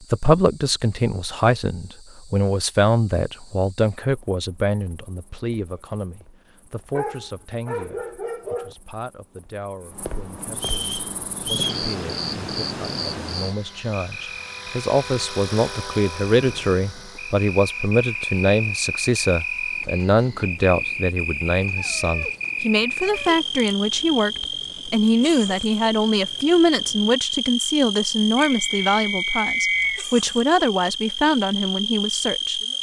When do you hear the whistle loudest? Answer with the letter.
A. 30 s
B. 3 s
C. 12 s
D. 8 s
A.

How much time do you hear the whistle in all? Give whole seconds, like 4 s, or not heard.
3 s.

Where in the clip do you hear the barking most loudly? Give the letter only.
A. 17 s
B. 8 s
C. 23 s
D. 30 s
B.